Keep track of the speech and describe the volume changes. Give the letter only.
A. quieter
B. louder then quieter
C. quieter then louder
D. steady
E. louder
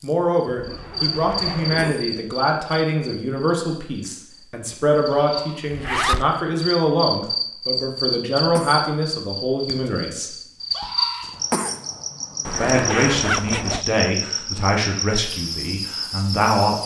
D.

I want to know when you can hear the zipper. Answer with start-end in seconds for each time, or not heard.
0.5-1.9, 5.7-6.2, 12.4-13.8.